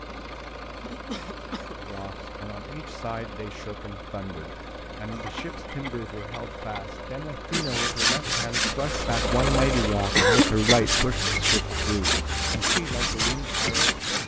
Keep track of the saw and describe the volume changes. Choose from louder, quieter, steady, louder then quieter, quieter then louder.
quieter then louder.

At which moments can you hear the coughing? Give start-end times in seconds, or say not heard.
0.8-1.9, 5.1-6.9, 10.2-10.8.